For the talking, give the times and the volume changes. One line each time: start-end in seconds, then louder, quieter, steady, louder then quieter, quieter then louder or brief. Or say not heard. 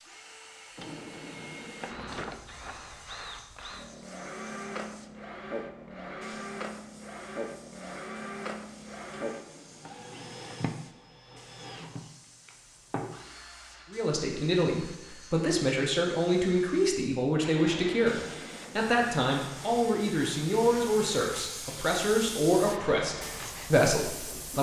13.9-24.5 steady.